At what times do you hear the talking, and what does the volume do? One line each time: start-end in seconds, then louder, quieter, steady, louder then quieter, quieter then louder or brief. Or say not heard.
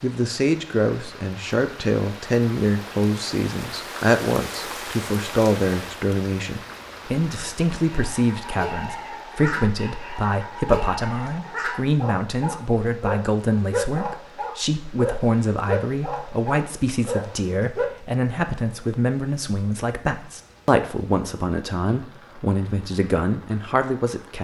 0.0-24.3 steady.